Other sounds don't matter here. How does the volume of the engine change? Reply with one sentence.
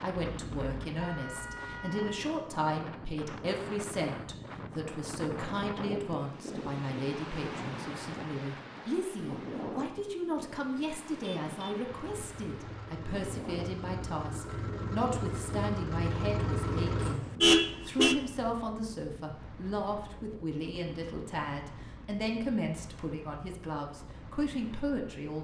The loudness of the engine goes up.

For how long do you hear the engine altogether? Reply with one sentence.
You can hear the engine for 5 seconds altogether.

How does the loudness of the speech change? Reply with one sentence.
The loudness of the speech stays about the same.